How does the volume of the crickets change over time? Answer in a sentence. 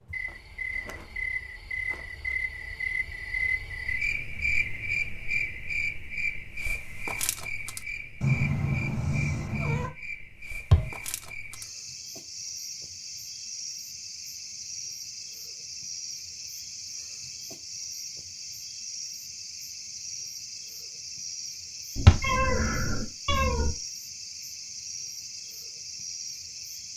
The volume of the crickets goes down.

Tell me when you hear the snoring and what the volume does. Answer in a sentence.
The snoring can't be heard in this clip.